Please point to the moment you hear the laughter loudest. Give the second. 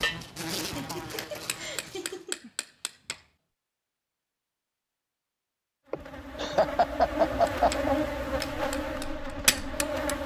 7 s.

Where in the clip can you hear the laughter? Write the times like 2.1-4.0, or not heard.
0.6-2.5, 5.9-7.9.